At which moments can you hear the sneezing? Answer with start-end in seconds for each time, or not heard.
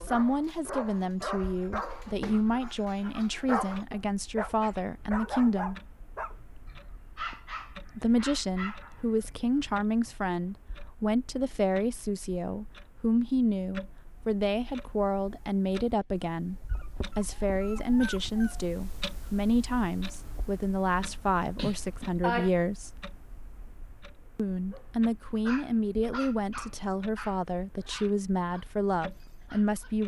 21.6-22.5.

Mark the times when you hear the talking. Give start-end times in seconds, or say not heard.
0.0-5.8, 8.0-23.1, 24.4-30.0.